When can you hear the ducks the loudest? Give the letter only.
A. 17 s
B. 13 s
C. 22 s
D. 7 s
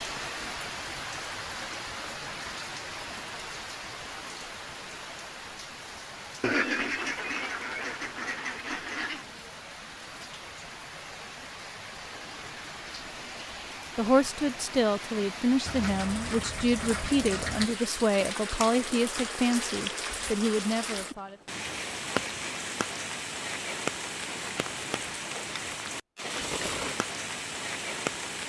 D.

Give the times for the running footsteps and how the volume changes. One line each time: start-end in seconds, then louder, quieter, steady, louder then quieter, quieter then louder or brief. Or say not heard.
not heard.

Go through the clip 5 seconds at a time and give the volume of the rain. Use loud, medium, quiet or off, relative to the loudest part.
loud, medium, medium, loud, loud, loud.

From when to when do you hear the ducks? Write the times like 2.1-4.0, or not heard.
6.4-9.2, 15.7-17.6.